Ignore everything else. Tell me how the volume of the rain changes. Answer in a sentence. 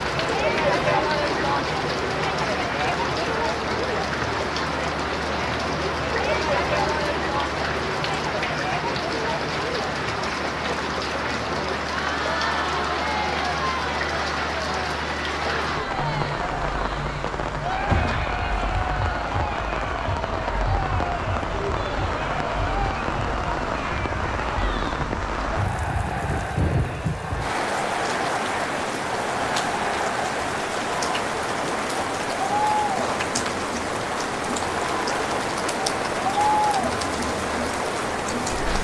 The loudness of the rain stays about the same.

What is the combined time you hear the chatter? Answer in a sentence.
The chatter can be heard for 39 seconds in total.